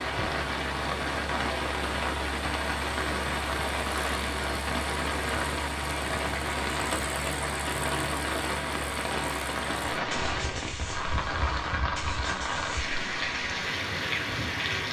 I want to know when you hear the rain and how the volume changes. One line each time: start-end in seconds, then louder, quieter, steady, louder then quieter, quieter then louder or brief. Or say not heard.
0.0-14.8 steady.